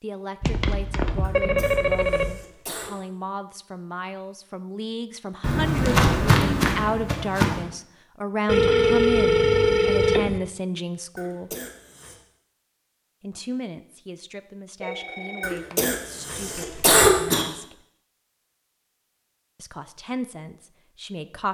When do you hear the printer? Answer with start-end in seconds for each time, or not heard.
not heard.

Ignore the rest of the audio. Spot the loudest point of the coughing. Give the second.
17 s.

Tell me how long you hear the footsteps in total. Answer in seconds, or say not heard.
2 s.